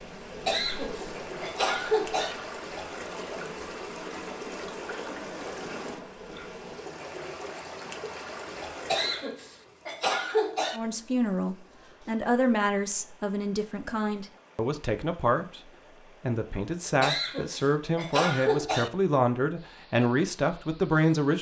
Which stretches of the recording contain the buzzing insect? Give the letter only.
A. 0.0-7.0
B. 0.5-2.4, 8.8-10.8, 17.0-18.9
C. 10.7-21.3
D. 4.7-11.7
A.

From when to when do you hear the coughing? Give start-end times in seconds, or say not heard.
0.5-2.4, 8.8-10.8, 17.0-18.9.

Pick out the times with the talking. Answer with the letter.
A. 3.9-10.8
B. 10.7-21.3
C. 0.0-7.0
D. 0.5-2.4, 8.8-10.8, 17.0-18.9
B.